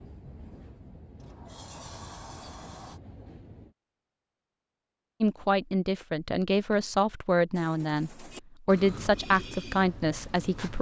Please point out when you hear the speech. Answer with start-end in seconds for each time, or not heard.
5.2-10.7.